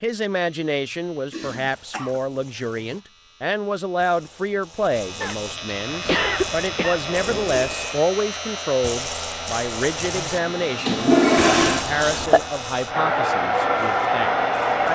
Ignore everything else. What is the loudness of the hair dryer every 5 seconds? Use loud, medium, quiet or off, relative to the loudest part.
off, quiet, loud.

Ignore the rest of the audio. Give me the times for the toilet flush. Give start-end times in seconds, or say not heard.
1.3-1.9, 6.0-7.8, 10.3-11.8.